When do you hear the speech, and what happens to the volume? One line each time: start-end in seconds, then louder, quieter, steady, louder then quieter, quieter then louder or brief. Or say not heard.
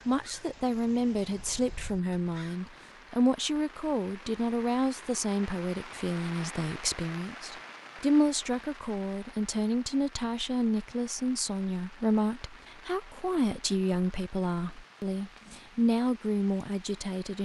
0.1-17.4 steady.